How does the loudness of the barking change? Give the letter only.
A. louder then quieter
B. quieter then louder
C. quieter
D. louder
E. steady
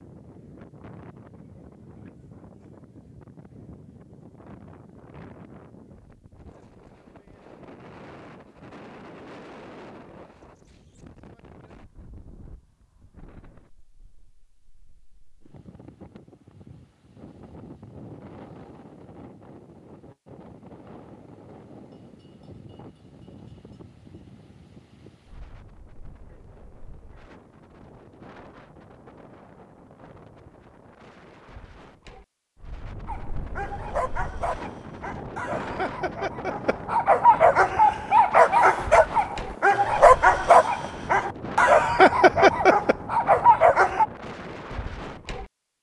D.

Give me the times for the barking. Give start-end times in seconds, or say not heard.
33.0-44.0.